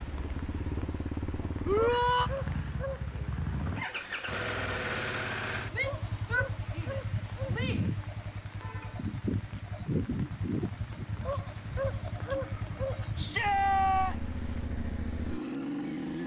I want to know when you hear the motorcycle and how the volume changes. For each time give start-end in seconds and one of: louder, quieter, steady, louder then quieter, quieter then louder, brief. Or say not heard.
0.0-16.2 steady.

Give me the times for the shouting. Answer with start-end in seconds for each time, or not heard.
1.6-2.3, 5.7-8.0, 13.2-14.2.